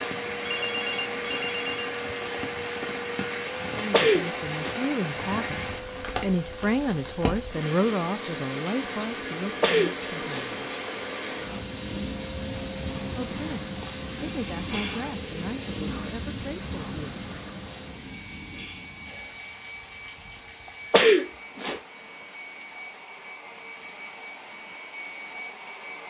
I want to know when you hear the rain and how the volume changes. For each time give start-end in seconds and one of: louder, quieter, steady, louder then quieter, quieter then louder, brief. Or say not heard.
0.0-26.0 quieter.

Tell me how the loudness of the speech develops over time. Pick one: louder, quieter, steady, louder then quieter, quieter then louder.
louder then quieter.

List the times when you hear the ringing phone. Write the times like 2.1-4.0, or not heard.
0.5-1.9.